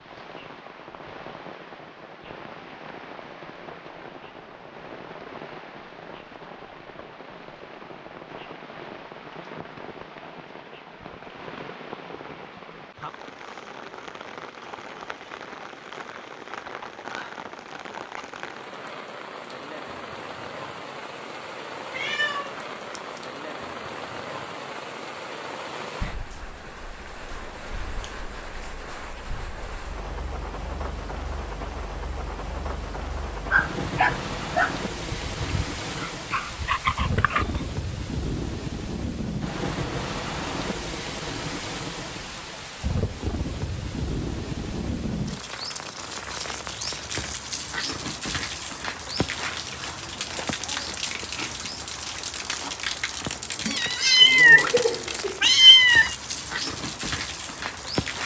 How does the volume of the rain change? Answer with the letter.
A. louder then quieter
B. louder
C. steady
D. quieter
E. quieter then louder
B.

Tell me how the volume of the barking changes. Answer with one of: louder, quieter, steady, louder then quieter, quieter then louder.
quieter then louder.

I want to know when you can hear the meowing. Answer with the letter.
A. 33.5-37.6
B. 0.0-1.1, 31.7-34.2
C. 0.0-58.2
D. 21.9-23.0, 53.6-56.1
D.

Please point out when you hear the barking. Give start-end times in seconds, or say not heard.
33.5-37.6.